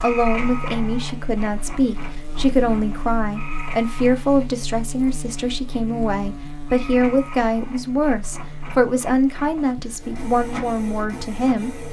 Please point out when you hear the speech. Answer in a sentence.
You can hear the speech from 0.0 to 11.7 s.